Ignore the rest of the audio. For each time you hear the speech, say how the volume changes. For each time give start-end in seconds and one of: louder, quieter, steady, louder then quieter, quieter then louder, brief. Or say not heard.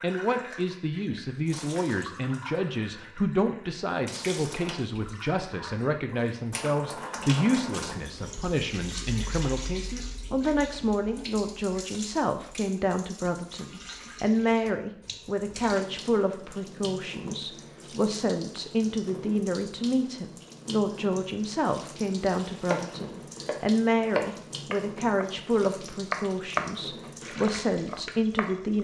0.0-28.7 steady.